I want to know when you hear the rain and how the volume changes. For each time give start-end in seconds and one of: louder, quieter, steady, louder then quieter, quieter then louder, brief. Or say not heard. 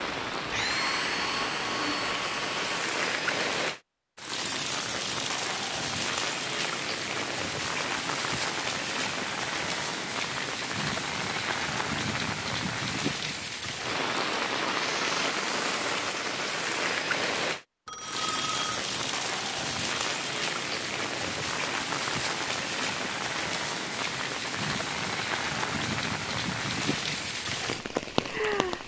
0.0-28.8 steady.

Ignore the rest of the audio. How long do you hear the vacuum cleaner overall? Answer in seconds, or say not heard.
3 s.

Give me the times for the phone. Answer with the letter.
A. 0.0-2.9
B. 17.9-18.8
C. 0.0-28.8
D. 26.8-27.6
B.